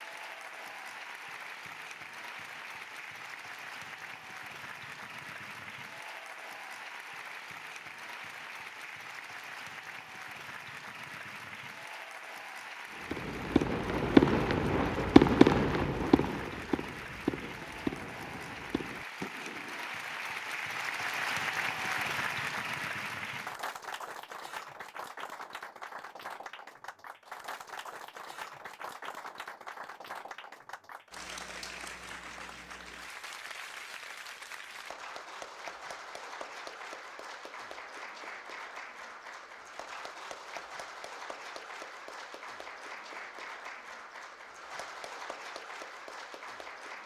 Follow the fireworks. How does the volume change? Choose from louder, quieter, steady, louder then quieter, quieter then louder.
quieter.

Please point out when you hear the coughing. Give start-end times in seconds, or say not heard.
not heard.